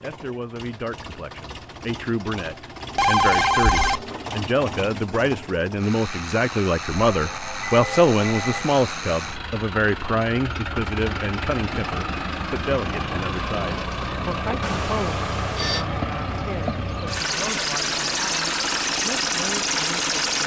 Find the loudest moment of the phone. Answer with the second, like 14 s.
3 s.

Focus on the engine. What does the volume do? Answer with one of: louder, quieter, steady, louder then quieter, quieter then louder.
louder.